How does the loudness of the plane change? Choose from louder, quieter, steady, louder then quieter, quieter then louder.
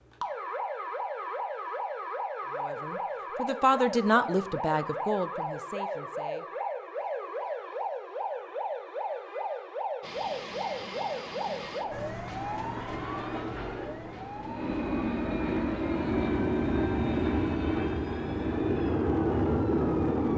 louder.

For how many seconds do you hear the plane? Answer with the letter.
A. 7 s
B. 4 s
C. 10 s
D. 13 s
C.